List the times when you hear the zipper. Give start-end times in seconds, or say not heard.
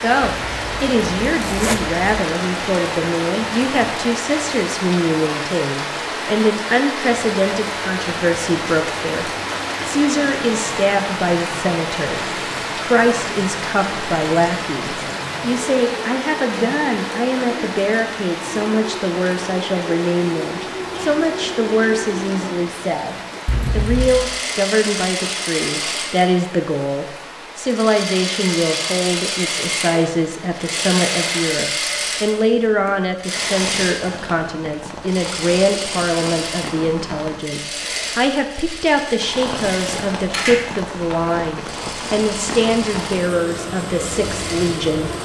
0.3-2.2, 23.4-24.1.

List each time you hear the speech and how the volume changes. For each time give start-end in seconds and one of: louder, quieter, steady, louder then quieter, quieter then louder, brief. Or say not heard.
0.0-45.1 steady.